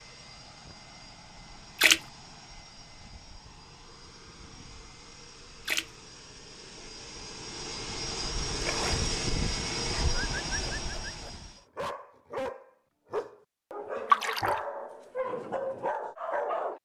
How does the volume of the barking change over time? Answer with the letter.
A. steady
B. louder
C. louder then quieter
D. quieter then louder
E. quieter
B.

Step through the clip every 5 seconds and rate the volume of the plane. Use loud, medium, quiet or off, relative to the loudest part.
quiet, loud, loud, off.